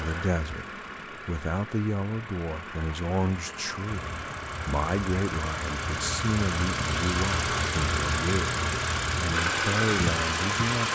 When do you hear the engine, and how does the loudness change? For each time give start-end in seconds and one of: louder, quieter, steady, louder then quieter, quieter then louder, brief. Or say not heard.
0.0-10.8 louder.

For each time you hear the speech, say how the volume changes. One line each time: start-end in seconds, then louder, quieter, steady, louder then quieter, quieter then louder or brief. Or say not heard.
0.0-0.7 brief
1.2-10.8 steady.